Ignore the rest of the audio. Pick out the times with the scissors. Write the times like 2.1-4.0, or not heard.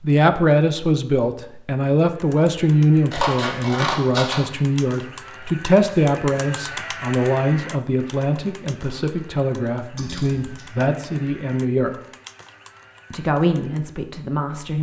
3.1-4.4, 9.9-10.7.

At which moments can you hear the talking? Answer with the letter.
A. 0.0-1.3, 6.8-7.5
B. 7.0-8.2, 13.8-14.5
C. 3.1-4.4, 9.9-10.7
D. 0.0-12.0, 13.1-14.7
D.